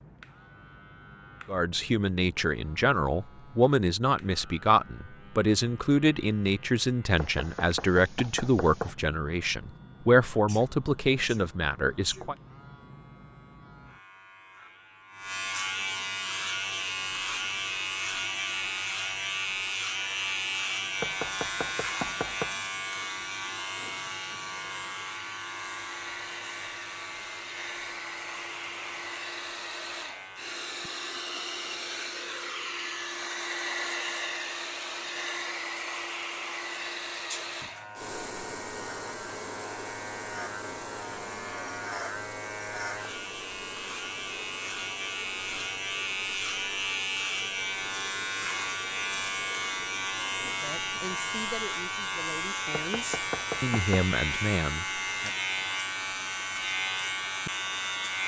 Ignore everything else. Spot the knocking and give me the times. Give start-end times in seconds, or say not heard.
7.2-8.9, 21.0-22.6, 52.7-54.1.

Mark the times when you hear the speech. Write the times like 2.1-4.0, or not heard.
1.4-12.3, 50.6-55.3.